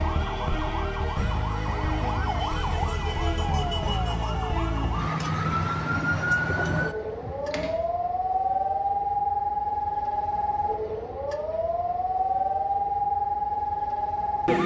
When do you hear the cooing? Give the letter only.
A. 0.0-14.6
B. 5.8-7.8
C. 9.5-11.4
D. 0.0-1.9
B.